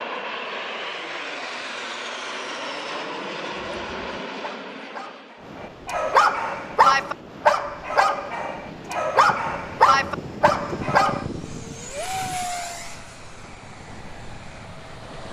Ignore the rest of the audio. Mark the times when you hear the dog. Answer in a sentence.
You can hear the dog from 3.7 to 11.2 s.